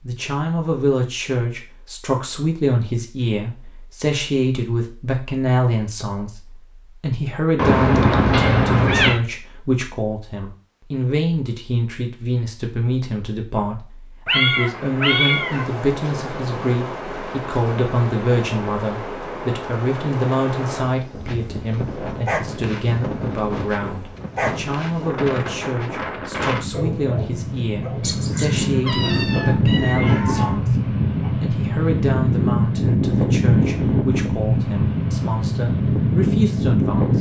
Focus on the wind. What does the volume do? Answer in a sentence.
The volume of the wind goes up.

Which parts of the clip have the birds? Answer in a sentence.
You can't hear the birds here.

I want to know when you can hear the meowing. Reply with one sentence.
You can hear the meowing from 7.5 to 9.2 s, from 14.2 to 15.7 s and from 28.0 to 30.6 s.